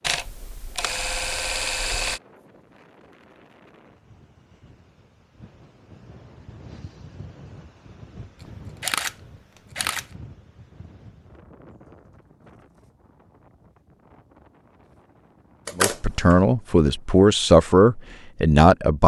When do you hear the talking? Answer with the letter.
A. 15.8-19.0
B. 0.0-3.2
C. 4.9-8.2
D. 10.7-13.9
A.